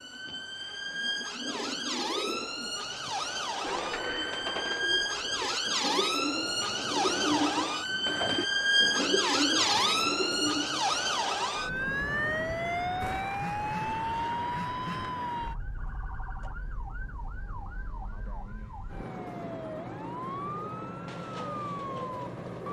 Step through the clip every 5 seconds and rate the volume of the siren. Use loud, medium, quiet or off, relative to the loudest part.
medium, loud, loud, quiet, medium.